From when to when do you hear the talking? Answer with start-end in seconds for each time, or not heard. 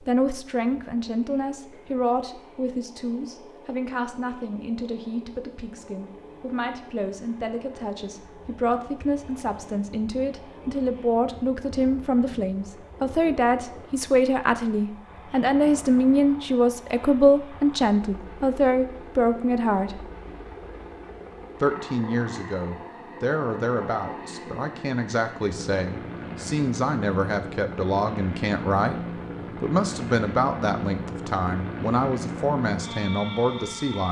0.1-20.1, 21.6-34.0.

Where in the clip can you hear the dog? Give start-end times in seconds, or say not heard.
not heard.